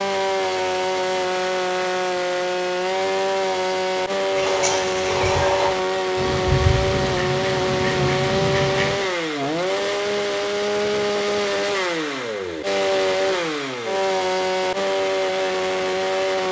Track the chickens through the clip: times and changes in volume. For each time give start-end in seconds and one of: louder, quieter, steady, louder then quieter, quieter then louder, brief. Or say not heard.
4.3-8.9 steady.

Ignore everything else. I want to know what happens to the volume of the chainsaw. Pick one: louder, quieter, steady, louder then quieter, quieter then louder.
steady.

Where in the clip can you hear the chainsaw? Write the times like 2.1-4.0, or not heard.
0.0-16.4.